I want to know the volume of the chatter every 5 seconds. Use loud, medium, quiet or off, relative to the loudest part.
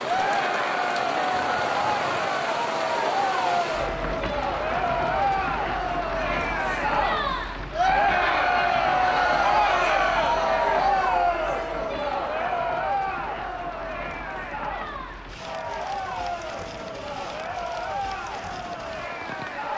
loud, loud, loud, medium.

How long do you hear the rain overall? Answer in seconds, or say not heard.
20 s.